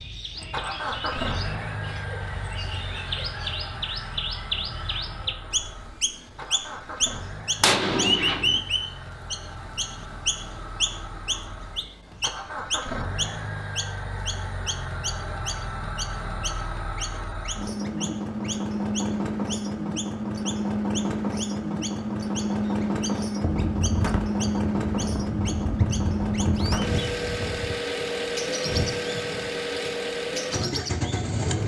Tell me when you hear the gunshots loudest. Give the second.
8 s.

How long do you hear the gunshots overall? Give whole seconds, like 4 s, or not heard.
5 s.